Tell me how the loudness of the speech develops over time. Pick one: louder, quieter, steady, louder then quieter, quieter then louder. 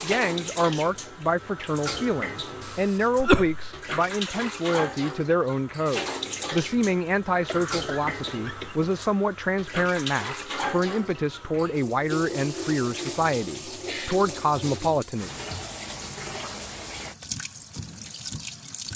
steady.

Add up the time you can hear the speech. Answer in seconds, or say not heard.
15 s.